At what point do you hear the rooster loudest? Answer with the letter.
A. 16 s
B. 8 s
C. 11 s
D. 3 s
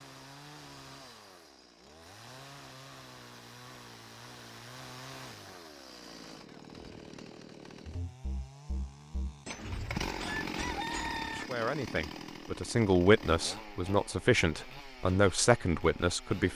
C.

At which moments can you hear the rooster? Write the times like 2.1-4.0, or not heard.
9.4-11.4.